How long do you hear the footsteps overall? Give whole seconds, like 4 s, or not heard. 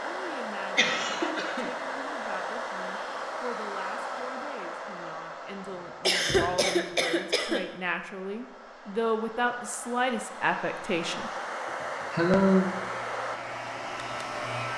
not heard.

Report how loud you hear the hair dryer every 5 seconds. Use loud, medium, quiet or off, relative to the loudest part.
loud, medium, loud.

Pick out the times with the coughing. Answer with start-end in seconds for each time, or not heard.
0.8-1.7, 6.0-7.7, 11.7-12.7.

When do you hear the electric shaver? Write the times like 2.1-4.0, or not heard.
12.7-14.7.